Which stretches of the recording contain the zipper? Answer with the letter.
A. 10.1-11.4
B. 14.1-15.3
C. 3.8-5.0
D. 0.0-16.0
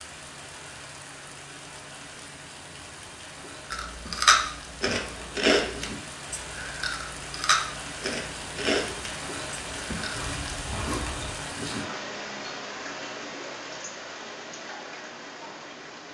A.